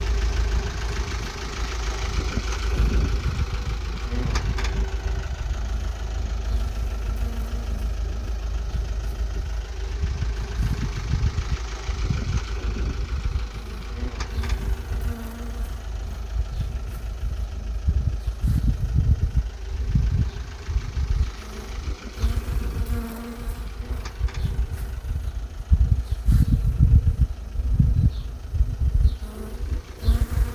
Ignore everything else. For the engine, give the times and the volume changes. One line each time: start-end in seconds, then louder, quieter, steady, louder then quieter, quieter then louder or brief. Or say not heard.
0.0-30.5 quieter.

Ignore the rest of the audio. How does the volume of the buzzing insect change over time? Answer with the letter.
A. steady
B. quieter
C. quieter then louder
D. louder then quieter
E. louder
E.